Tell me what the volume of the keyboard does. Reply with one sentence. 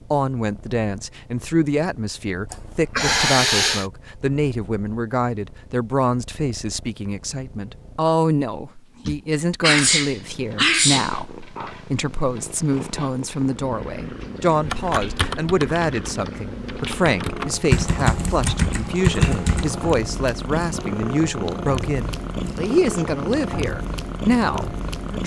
The volume of the keyboard goes down, then up.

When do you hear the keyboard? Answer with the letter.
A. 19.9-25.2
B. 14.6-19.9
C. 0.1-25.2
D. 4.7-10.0
B.